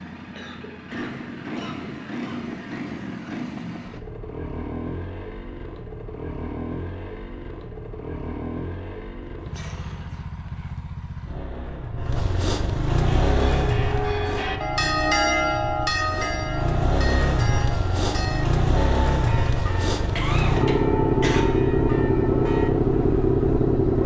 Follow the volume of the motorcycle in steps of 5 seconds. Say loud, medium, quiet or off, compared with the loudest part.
quiet, quiet, medium, medium, loud.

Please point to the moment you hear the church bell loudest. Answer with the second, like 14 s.
15 s.